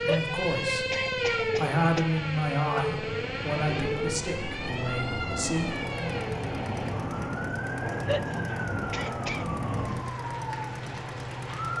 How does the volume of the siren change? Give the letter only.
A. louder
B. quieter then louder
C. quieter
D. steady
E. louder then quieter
C.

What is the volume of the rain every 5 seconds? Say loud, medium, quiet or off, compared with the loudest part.
medium, loud, medium.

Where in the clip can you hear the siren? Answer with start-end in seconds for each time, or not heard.
0.0-11.7.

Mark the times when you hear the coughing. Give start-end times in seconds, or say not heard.
0.1-2.0, 8.1-9.4.